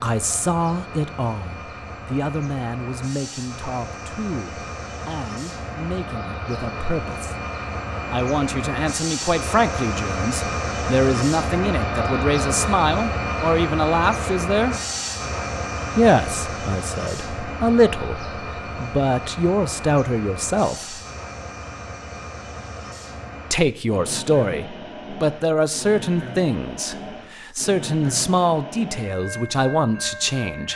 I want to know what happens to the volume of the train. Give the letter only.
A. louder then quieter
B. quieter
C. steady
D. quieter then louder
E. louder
A.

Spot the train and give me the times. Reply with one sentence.
The train can be heard from 0.0 to 30.7 s.